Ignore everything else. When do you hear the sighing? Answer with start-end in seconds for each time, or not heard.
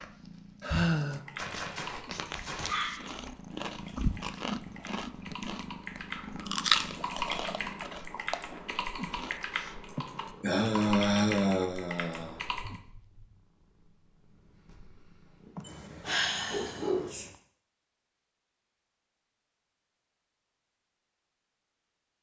0.6-1.2, 9.9-12.4, 15.6-16.9.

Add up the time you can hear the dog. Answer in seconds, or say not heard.
3 s.